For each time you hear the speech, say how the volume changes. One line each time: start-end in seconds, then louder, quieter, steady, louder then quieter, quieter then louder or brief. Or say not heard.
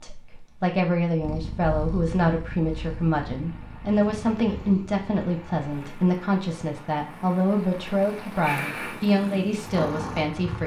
0.0-10.6 steady.